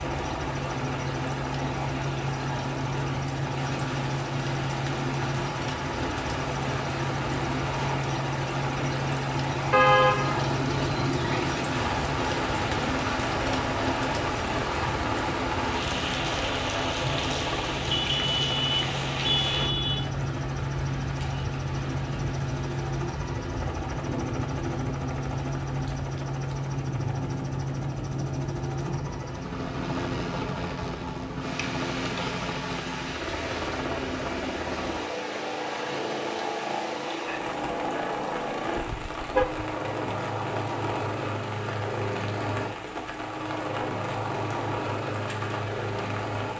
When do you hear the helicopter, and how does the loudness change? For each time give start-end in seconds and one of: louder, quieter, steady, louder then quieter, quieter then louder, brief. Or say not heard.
0.0-46.5 steady.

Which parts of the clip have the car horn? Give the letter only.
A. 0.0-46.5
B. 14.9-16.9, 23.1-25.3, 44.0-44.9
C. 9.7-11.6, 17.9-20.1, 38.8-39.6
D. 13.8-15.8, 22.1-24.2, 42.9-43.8
C.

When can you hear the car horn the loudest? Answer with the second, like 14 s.
10 s.